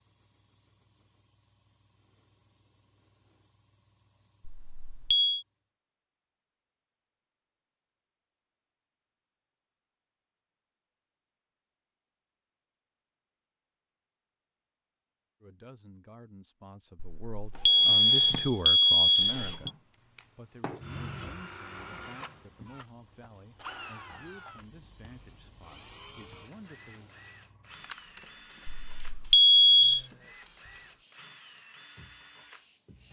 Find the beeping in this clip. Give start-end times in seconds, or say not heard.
4.5-5.5, 17.0-19.7, 28.6-30.0.